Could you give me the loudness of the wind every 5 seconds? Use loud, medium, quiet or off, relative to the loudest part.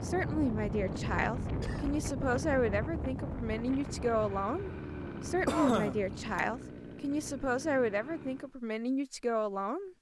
loud, medium.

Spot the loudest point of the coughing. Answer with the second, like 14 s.
6 s.